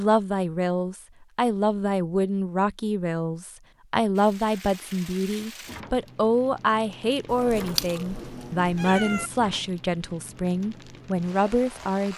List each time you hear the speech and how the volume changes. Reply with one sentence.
You can hear the speech from 0.0 to 12.1 s, at a steady volume.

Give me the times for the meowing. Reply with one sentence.
You can hear the meowing from 7.2 to 9.3 s.